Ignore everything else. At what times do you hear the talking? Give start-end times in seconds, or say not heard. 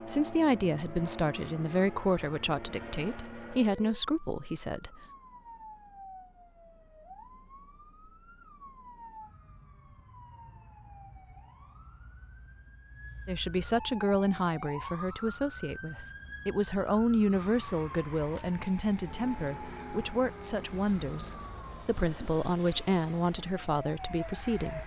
0.1-5.0, 13.2-24.8.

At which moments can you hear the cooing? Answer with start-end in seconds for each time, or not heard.
not heard.